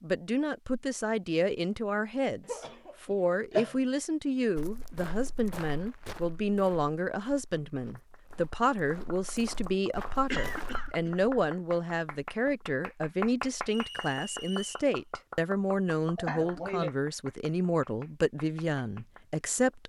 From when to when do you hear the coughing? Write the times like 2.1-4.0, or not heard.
2.5-3.8, 10.3-11.3, 16.1-16.9.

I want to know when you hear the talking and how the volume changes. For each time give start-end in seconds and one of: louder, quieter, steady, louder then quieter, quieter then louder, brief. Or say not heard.
0.0-19.8 steady.